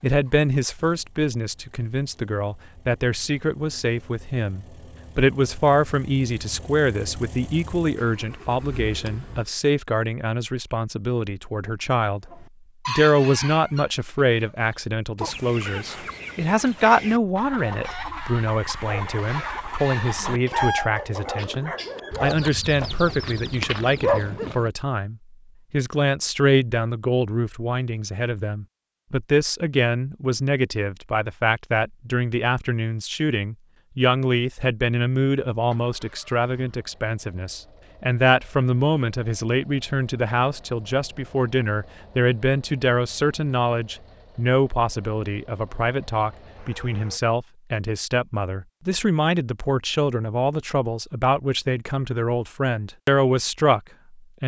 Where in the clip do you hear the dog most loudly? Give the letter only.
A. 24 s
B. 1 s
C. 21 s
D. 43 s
A.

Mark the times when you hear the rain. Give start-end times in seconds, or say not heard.
not heard.